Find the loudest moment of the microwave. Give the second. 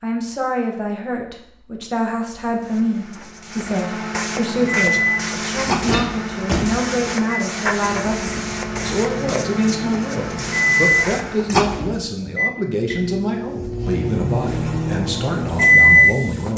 16 s.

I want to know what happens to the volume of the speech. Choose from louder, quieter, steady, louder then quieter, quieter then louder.
steady.